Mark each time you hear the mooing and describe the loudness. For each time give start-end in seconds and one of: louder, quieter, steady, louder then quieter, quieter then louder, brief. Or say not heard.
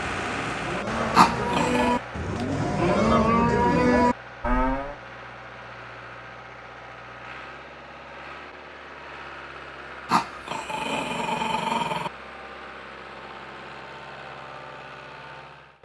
0.0-5.0 louder.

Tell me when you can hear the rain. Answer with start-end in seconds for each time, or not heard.
not heard.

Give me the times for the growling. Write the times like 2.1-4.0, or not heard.
1.1-2.0, 10.1-12.1.